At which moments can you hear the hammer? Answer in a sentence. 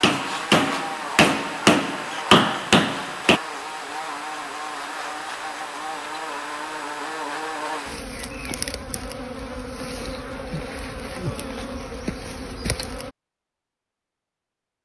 The hammer can be heard from 0.0 to 3.4 s.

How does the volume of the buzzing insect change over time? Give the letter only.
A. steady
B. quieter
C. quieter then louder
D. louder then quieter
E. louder
A.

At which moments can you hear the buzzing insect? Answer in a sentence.
You can hear the buzzing insect from 0.0 to 13.2 s.